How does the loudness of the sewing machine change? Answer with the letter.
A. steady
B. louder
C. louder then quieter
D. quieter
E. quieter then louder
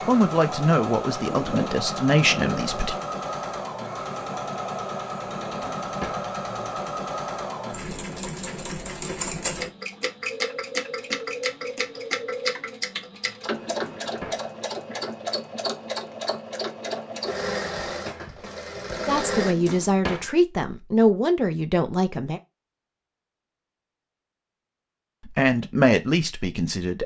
A.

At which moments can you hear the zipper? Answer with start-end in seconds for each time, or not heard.
1.2-2.6.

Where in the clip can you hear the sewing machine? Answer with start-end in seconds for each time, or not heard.
0.0-19.6.